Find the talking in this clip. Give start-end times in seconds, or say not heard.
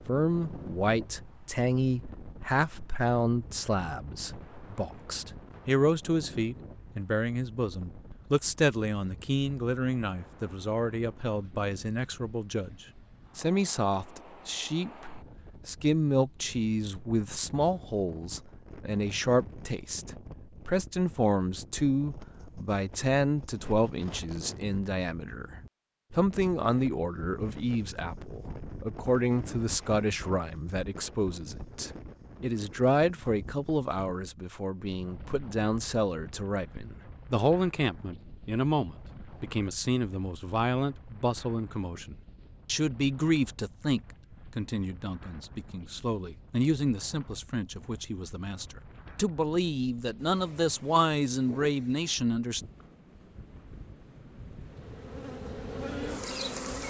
0.1-25.4, 26.1-52.6.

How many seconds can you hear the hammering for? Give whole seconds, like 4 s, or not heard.
not heard.